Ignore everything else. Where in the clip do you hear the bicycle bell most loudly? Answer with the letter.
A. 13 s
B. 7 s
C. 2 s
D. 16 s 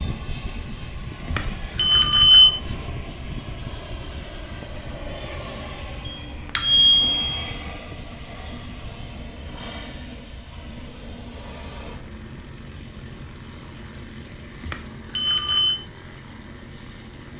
C.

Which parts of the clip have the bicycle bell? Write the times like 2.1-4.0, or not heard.
1.2-2.5, 6.0-7.5, 14.7-15.8.